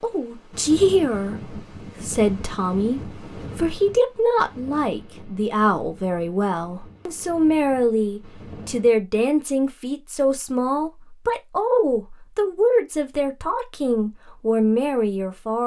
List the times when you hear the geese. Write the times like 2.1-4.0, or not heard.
not heard.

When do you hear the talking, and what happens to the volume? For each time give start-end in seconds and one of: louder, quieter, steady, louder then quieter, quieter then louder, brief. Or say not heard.
0.0-15.6 steady.